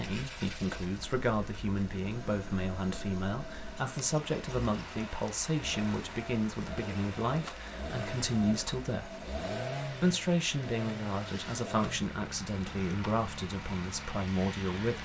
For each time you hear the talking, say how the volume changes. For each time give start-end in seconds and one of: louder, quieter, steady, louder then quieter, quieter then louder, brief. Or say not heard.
0.0-9.2 steady
10.0-15.0 steady.